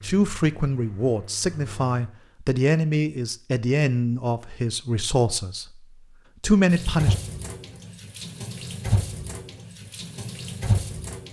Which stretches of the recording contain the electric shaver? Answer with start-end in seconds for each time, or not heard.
not heard.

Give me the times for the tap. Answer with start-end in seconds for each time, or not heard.
0.0-2.0, 6.7-11.2.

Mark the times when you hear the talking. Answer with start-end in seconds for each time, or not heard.
0.0-7.2.